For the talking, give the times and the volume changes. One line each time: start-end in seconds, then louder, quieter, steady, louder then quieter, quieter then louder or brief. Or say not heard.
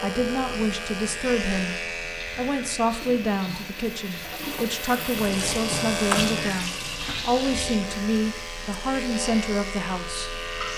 0.0-10.4 steady.